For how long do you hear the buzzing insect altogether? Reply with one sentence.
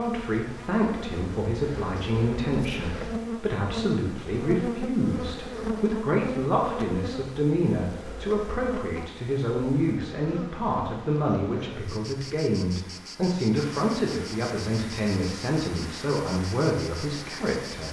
You can hear the buzzing insect for 18 seconds altogether.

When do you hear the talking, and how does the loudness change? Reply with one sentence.
The talking can be heard from 0.0 to 17.8 s, at a steady volume.